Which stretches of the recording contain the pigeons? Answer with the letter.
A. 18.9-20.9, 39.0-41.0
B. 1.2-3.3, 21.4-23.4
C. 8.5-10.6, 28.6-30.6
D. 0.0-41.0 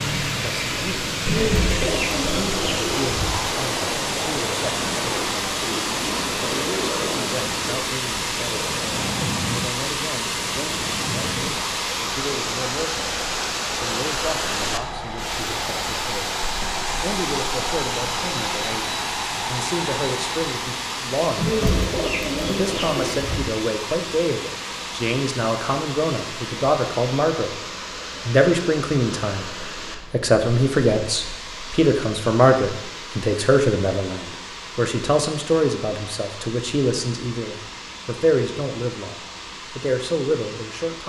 B.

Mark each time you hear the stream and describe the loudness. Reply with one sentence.
The stream can be heard from 0.0 to 41.0 s, getting quieter.